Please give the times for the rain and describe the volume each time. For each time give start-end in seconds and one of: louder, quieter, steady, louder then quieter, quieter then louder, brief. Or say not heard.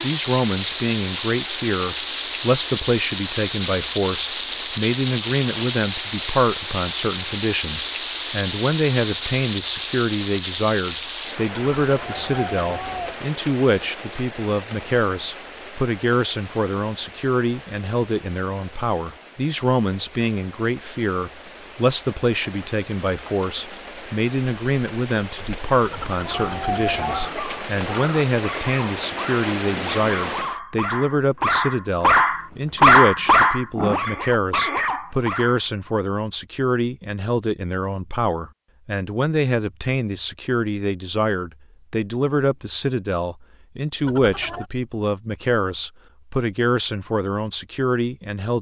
0.0-30.6 quieter then louder.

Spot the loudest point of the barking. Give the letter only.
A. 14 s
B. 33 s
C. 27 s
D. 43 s
B.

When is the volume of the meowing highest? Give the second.
27 s.